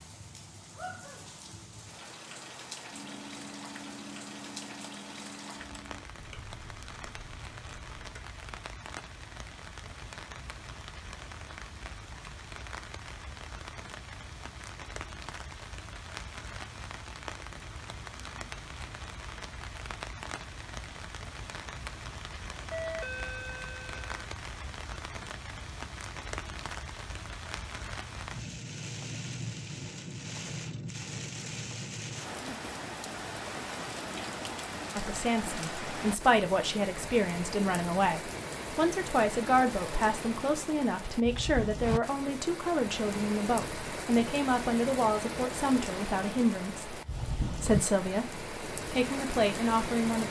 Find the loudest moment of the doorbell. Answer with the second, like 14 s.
23 s.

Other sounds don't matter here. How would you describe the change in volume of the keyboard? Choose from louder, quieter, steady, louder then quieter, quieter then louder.
quieter.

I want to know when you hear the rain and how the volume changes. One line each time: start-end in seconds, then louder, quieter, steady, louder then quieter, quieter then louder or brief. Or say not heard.
0.0-50.2 louder.